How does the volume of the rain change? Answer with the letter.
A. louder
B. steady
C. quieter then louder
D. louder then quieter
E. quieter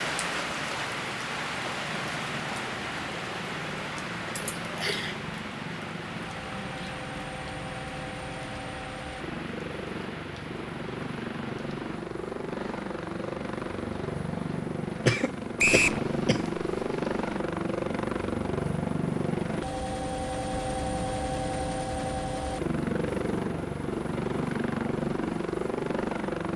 E.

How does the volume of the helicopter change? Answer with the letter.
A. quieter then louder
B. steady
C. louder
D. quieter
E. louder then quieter
C.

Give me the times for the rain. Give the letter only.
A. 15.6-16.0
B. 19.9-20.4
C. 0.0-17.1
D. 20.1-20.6
C.